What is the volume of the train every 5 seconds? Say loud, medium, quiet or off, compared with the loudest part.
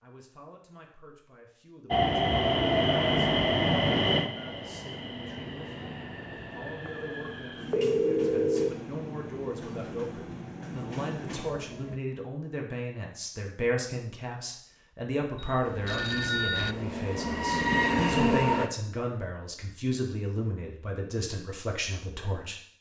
loud, quiet, quiet, loud, off.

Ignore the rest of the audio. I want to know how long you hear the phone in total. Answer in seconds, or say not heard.
3 s.